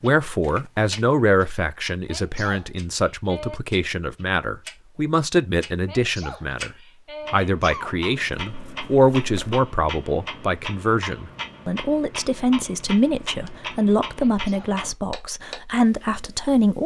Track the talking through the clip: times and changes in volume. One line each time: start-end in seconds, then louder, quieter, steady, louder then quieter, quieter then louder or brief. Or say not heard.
0.0-16.8 steady.